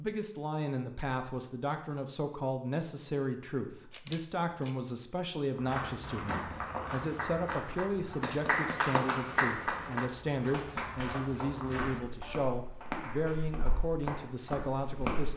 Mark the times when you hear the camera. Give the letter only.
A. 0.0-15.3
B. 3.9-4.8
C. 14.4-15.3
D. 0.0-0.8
B.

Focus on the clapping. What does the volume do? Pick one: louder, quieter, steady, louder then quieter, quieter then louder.
louder then quieter.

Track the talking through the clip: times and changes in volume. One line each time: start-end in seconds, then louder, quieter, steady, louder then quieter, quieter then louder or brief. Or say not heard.
0.0-15.3 steady.